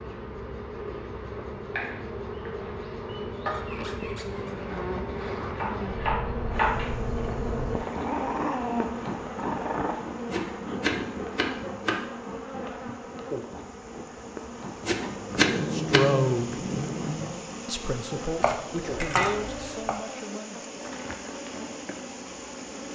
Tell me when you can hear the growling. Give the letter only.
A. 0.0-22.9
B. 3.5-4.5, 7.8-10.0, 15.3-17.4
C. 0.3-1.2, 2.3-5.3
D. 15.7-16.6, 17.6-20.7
B.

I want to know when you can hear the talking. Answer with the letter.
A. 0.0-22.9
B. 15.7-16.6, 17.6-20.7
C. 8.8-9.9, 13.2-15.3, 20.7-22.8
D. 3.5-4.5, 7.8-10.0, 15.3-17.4
B.